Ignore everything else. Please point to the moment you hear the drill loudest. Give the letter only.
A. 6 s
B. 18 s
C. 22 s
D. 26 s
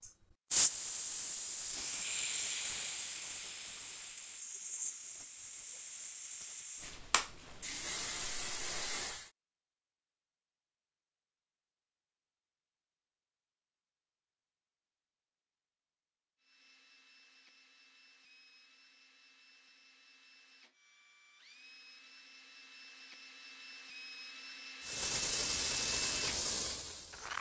D.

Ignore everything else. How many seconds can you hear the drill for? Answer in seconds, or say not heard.
11 s.